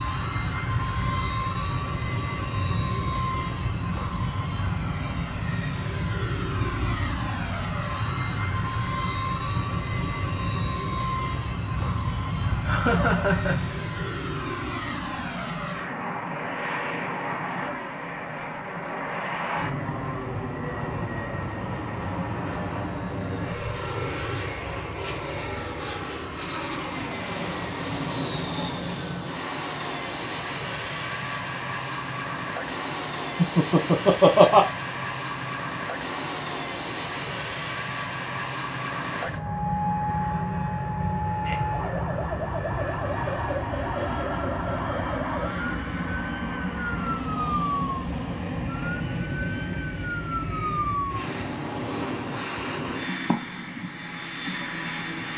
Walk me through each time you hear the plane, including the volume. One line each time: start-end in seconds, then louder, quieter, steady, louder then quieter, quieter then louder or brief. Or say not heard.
0.0-55.3 steady.